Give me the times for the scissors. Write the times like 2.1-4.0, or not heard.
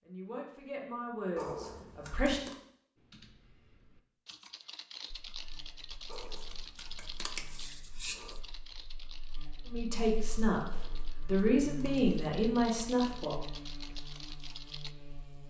1.4-2.5, 6.1-8.4, 10.7-12.2.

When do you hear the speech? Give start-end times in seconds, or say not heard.
0.0-2.5, 9.7-10.7, 11.2-13.3.